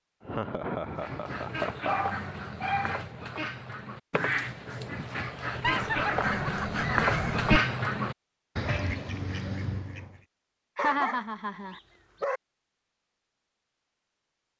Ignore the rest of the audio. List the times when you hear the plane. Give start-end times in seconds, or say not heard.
not heard.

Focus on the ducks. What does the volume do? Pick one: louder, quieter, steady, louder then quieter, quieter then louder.
louder then quieter.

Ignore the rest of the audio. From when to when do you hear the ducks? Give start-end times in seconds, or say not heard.
0.8-10.2.